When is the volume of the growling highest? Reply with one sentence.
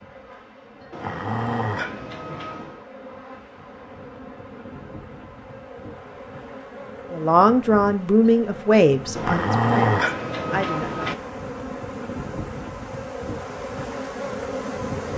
The loudest moment of the growling is at 10 seconds.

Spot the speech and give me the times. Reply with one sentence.
You can hear the speech from 7.1 to 11.1 s.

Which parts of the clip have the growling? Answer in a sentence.
You can hear the growling from 0.9 to 2.8 s and from 9.2 to 11.2 s.